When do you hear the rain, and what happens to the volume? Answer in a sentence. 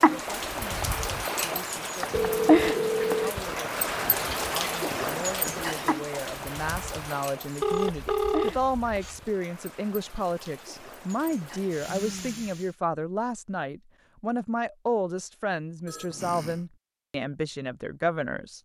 You can hear the rain from 0.0 to 12.7 s, getting quieter.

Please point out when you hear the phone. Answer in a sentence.
The phone can be heard from 2.1 to 3.4 s, from 7.6 to 9.2 s and from 15.8 to 16.6 s.